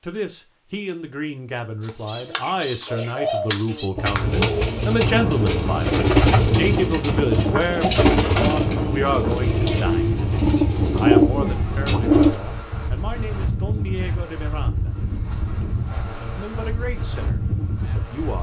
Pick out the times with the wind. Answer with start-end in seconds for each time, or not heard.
5.0-18.3.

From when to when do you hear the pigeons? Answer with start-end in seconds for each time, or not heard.
1.8-12.4.